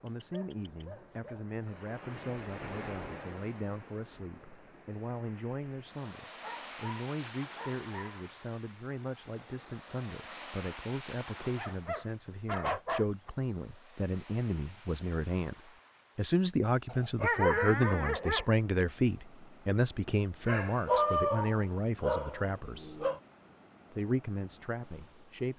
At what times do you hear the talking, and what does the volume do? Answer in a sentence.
You can hear the talking from 0.0 to 23.1 s, getting louder; and briefly from 23.9 to 25.5 s.